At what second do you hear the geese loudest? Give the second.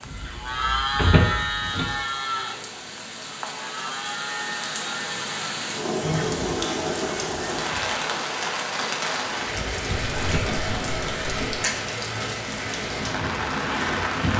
6 s.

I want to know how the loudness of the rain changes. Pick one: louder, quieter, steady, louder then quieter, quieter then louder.
louder.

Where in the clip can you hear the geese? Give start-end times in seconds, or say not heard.
0.0-1.9, 6.0-8.0, 9.9-11.5.